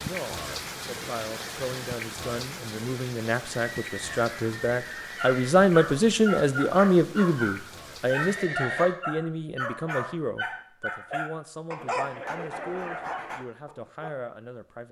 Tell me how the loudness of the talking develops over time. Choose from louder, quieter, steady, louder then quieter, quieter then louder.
louder then quieter.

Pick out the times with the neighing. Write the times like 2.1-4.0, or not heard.
3.5-5.5, 8.1-8.9.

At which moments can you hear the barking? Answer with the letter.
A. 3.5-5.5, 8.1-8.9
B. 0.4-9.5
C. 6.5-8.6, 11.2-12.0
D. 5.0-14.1
D.